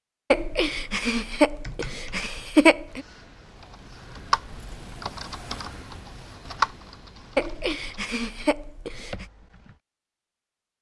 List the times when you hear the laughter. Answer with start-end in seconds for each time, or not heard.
0.3-3.0, 7.3-9.2.